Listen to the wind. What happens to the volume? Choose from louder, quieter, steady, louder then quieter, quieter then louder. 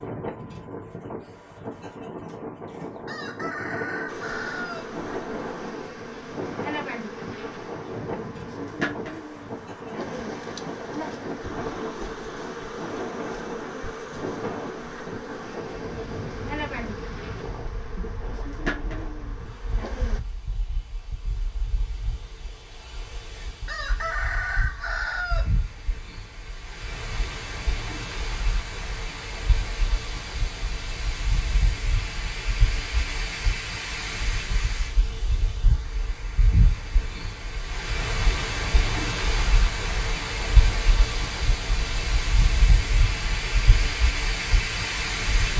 quieter then louder.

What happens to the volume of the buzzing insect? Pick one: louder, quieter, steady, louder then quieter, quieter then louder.
steady.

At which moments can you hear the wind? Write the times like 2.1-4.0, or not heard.
0.0-45.5.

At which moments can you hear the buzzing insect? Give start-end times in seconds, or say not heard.
4.0-20.2.